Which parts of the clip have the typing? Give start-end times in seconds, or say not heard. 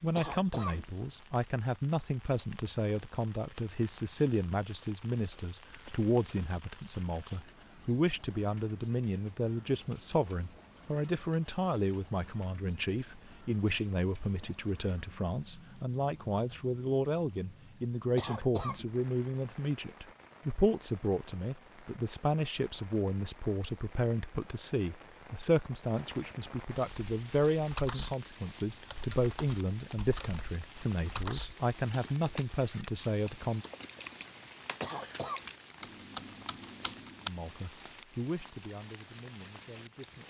26.7-37.3.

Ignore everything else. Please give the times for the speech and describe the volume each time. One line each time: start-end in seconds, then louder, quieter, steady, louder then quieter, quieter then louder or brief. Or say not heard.
0.0-33.6 steady
37.2-40.2 brief.